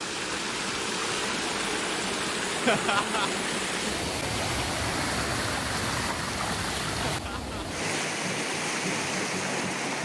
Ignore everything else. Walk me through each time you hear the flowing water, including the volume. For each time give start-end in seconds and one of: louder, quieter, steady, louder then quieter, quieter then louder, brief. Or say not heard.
0.0-10.0 steady.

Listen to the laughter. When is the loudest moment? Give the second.
3 s.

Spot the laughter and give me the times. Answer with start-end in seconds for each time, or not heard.
2.6-3.3, 7.0-7.7.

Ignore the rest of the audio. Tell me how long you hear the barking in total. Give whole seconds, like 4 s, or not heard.
not heard.